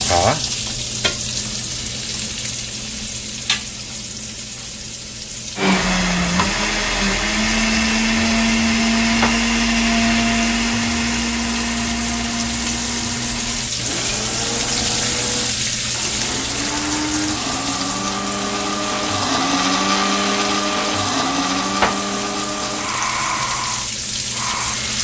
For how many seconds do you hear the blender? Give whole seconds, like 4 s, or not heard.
19 s.